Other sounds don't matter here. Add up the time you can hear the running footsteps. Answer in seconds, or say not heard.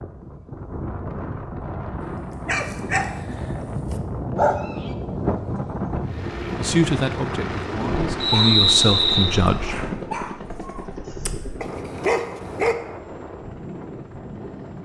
not heard.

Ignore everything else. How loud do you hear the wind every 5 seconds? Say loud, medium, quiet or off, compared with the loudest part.
loud, loud, medium.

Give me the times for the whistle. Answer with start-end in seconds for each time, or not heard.
8.2-9.3.